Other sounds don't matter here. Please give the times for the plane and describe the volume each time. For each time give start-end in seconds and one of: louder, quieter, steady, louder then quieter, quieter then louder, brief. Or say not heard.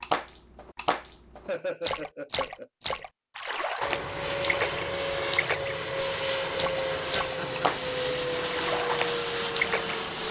3.8-10.2 steady.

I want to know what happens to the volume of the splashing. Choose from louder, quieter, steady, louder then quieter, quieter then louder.
steady.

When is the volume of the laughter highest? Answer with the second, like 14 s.
2 s.